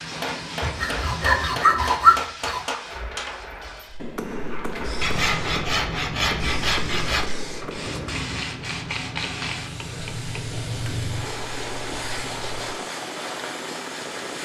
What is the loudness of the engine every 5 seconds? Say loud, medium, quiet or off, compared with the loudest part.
medium, loud, loud.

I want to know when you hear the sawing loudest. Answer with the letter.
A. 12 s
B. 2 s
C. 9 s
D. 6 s
B.